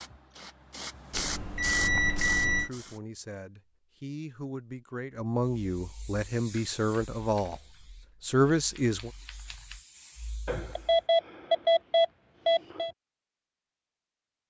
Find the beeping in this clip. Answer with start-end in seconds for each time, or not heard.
1.1-2.7, 10.4-12.9.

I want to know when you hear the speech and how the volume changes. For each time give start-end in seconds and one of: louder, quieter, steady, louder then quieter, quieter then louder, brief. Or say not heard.
2.4-7.6 louder
8.2-9.1 brief.